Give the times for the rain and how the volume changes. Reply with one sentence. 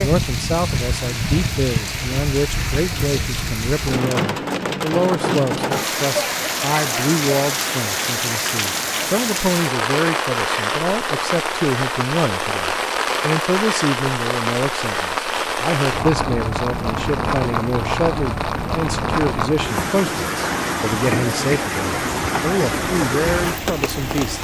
You can hear the rain from 0.0 to 24.3 s, at a steady volume.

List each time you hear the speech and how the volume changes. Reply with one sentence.
You can hear the speech from 0.0 to 24.3 s, at a steady volume.